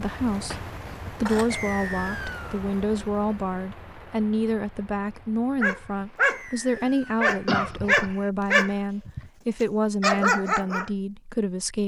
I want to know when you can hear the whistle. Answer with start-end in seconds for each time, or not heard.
1.5-2.6, 6.2-7.2.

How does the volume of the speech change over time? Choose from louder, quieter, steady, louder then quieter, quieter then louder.
steady.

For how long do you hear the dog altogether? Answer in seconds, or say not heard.
5 s.